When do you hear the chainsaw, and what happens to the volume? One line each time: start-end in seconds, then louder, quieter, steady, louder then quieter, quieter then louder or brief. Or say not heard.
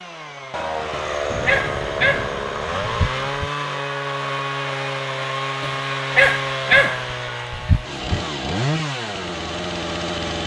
0.0-10.4 steady.